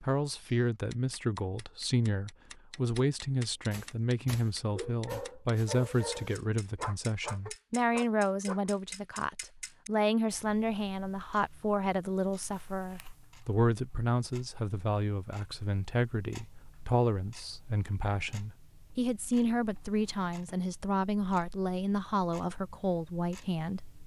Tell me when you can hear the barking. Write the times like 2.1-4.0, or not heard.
3.7-8.7.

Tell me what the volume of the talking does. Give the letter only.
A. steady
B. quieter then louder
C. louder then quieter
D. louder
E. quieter
A.